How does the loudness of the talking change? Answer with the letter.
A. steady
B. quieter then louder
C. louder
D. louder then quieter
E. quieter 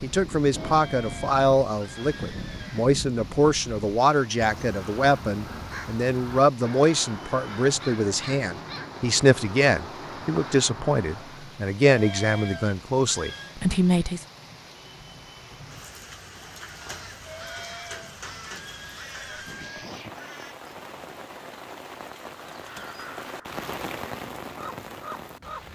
A.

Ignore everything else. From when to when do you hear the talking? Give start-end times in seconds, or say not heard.
0.0-14.2.